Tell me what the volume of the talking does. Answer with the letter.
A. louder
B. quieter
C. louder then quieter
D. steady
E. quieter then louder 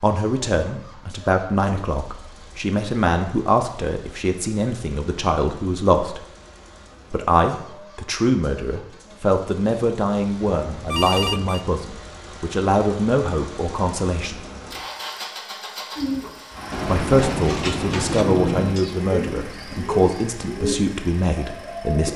D.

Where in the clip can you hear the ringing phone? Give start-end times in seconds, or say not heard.
10.6-11.7.